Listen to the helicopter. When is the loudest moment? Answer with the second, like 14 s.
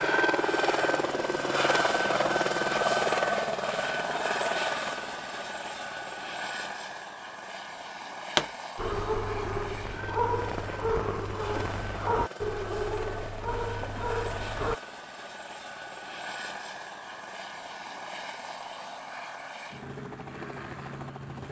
3 s.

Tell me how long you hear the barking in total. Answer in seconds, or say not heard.
6 s.